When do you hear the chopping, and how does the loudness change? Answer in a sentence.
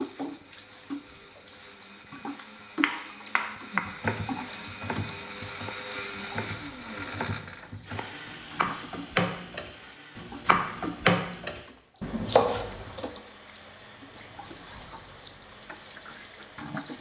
The chopping can be heard from 2.8 to 13.1 s, getting quieter then louder.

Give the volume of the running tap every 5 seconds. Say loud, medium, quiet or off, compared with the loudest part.
loud, medium, medium, loud.